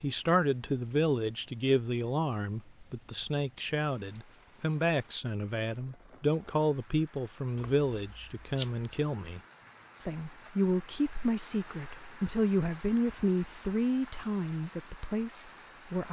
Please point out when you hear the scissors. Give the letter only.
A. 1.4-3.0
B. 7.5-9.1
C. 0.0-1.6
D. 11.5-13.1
B.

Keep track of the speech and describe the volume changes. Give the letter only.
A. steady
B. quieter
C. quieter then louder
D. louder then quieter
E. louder
A.